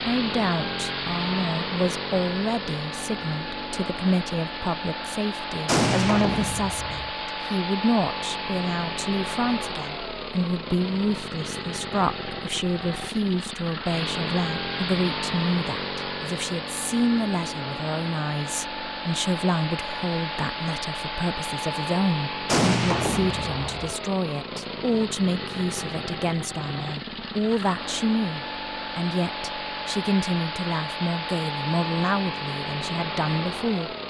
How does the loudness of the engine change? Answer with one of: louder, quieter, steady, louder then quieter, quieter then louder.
steady.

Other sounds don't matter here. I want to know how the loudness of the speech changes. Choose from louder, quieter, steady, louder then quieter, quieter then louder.
steady.